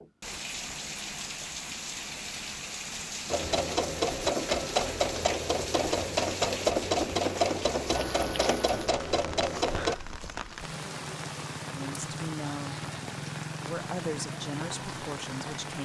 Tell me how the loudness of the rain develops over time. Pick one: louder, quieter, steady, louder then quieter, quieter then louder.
steady.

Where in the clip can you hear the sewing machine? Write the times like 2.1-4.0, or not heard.
3.2-9.9.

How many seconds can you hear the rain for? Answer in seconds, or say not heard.
16 s.